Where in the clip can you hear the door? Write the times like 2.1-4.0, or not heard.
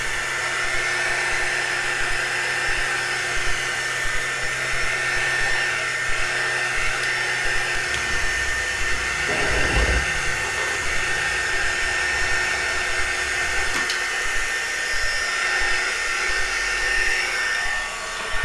9.2-11.1.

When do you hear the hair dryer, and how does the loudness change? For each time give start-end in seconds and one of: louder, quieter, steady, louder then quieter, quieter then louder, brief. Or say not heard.
0.0-18.4 steady.